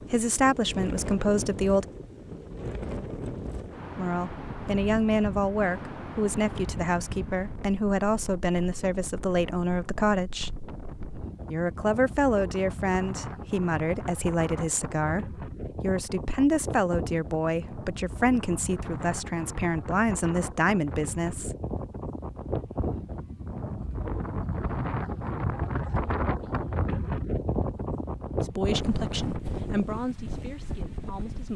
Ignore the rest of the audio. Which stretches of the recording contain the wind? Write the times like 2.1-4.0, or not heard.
0.0-31.5.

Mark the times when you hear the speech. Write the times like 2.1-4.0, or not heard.
0.1-1.9, 4.0-10.5, 11.4-21.6, 28.4-31.5.